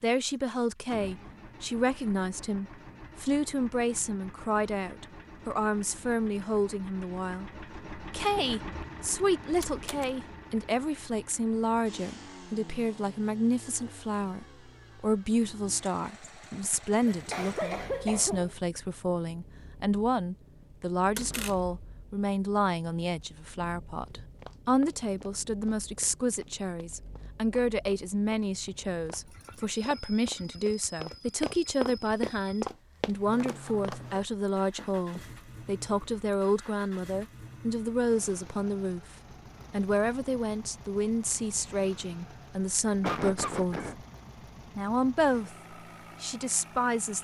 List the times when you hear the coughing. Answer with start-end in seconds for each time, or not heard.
17.1-18.6, 43.0-44.0.